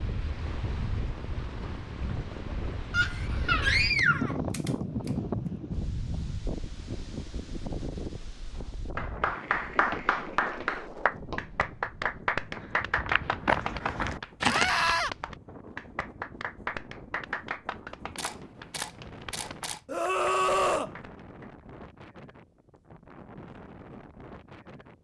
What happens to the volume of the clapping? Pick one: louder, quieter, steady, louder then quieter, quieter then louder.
quieter.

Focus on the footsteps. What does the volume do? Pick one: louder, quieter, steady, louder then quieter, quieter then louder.
louder.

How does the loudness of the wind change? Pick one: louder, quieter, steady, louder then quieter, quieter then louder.
quieter.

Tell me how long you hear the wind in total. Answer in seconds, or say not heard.
25 s.